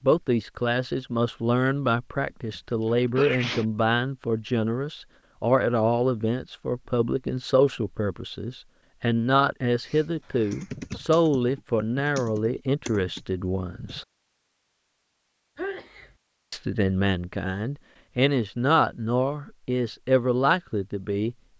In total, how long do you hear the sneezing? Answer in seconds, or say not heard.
3 s.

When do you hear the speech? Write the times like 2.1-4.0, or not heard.
0.0-14.1, 16.5-21.5.